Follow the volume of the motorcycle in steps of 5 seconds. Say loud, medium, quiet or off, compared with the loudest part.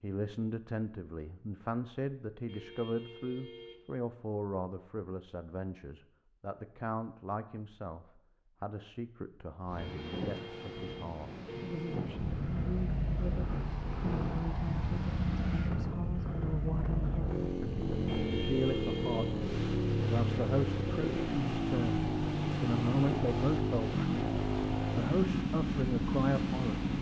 off, off, medium, loud, loud, loud.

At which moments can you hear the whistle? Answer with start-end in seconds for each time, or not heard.
not heard.